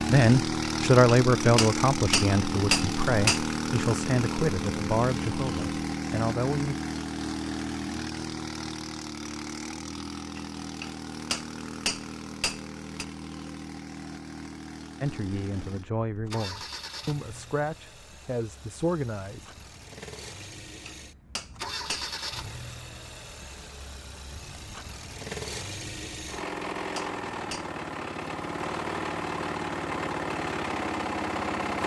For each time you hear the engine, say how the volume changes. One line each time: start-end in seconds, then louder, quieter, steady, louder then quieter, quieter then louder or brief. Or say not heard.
0.0-31.8 quieter then louder.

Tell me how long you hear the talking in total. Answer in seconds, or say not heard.
11 s.